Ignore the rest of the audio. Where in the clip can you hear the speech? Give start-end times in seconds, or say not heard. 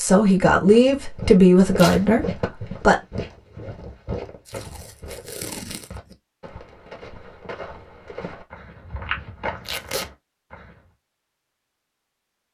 0.0-3.0.